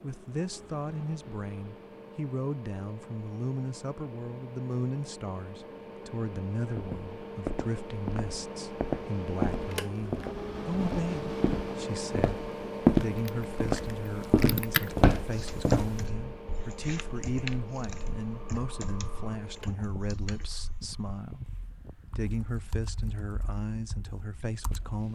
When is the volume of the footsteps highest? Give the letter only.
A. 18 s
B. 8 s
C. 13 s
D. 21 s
C.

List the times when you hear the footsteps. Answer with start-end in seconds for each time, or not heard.
6.6-16.0.